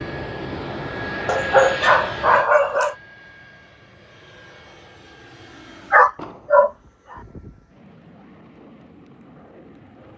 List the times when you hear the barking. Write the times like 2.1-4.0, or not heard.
1.2-3.0, 5.9-6.7.